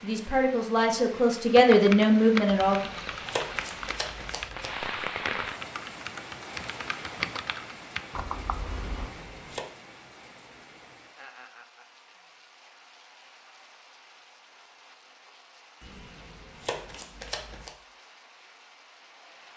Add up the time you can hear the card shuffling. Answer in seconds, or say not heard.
5 s.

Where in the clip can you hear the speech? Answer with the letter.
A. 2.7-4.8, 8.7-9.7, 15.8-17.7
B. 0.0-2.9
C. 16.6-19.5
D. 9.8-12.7
B.